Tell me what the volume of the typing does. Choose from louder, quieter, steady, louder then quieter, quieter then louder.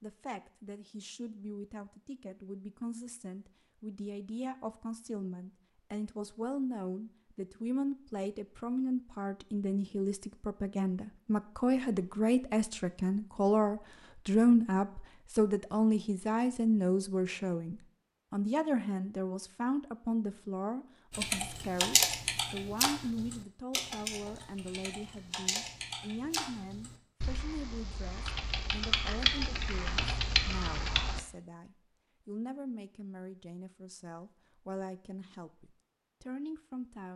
quieter then louder.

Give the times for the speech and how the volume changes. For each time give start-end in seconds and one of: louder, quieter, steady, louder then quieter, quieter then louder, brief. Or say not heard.
0.0-37.1 louder then quieter.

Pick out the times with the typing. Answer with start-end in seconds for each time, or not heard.
21.1-31.2.